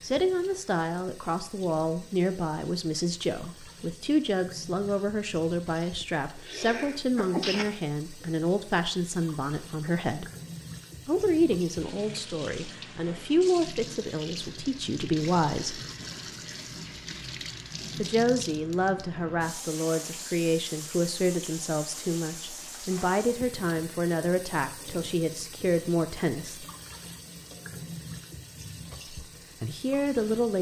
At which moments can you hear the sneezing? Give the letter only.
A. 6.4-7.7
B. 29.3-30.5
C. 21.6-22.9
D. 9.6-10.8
A.